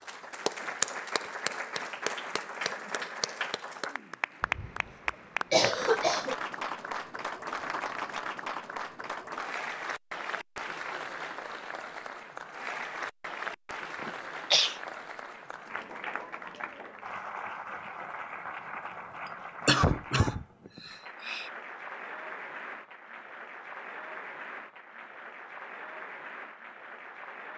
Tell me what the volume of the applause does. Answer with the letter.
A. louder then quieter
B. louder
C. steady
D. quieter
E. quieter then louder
D.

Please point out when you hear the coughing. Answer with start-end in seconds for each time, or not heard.
4.4-6.3, 14.0-14.8, 19.6-21.5.